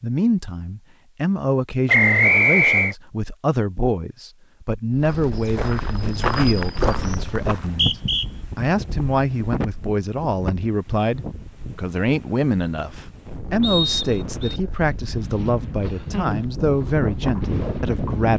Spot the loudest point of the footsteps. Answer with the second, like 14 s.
6 s.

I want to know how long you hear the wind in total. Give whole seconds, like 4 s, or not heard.
13 s.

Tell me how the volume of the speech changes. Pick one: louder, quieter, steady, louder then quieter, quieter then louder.
steady.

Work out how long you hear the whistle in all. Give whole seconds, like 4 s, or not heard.
3 s.